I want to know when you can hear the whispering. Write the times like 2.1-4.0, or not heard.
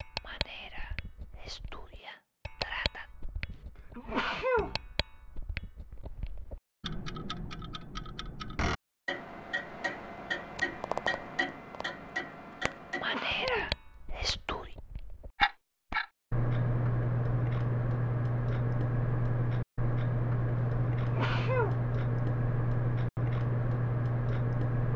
0.2-3.1, 13.0-14.7.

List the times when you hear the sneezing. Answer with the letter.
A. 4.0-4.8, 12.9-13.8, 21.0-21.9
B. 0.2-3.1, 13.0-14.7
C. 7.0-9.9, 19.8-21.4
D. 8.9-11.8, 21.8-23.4
A.